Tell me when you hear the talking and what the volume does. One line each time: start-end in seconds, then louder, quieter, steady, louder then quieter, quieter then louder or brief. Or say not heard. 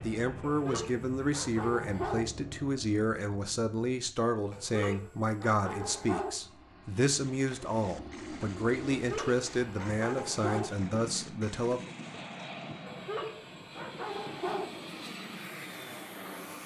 0.0-11.9 steady.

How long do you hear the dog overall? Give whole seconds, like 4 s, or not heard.
7 s.